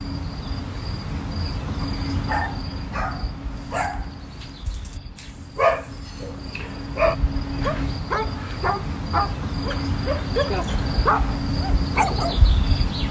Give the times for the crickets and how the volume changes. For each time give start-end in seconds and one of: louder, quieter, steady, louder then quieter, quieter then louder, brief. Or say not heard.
0.0-13.0 quieter then louder.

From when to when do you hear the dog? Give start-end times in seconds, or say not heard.
1.8-12.4.